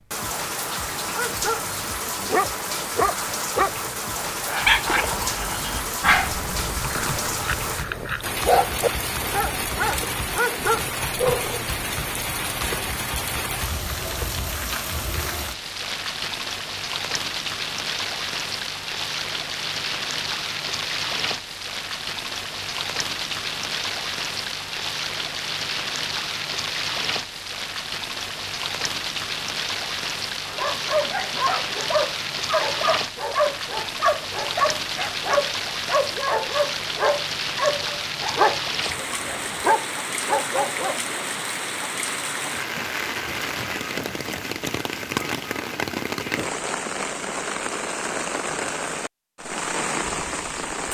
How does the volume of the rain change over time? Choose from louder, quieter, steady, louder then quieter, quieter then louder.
steady.